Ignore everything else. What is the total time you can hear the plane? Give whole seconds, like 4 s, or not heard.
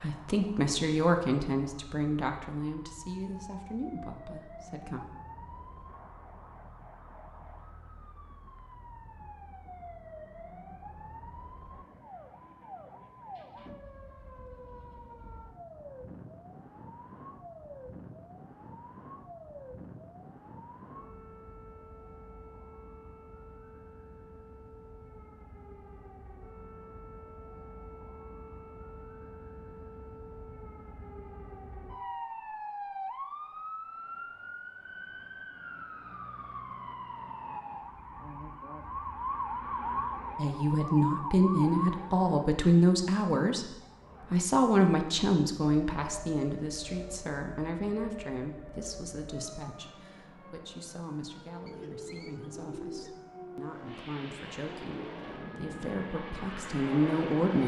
4 s.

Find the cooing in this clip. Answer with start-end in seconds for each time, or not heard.
51.6-53.2.